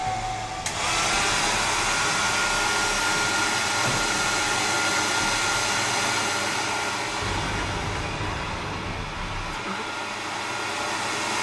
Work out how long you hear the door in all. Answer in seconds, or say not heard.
3 s.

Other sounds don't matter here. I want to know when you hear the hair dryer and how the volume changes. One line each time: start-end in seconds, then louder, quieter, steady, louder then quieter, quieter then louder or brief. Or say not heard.
0.0-11.3 quieter.